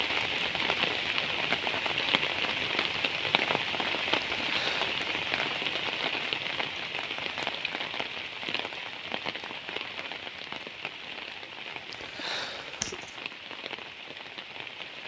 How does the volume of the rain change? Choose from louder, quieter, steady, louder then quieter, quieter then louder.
quieter.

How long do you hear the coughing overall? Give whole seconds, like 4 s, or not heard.
2 s.